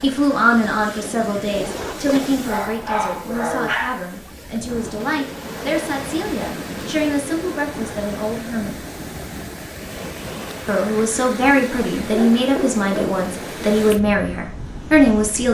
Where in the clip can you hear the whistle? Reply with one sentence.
You can't hear the whistle here.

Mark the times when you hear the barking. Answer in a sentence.
The barking can be heard from 2.2 to 4.0 s and from 12.1 to 13.2 s.